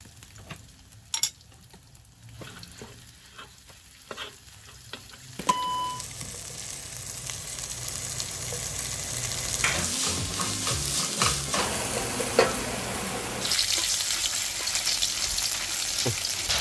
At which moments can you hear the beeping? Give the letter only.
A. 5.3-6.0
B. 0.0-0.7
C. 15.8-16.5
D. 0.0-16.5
A.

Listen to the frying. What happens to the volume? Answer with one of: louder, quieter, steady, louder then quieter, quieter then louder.
louder.